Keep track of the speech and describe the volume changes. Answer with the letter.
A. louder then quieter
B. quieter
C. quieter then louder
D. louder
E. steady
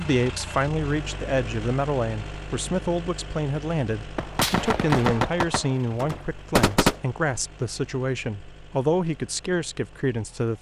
E.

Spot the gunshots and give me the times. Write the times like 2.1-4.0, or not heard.
4.2-7.0.